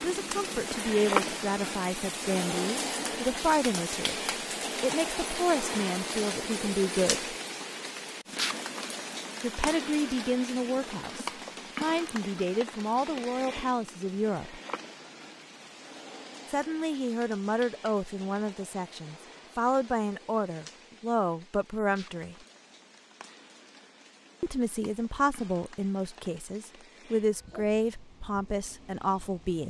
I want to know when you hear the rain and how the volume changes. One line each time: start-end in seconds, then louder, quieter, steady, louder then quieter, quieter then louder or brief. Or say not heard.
0.0-29.6 quieter.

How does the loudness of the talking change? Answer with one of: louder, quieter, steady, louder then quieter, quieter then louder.
steady.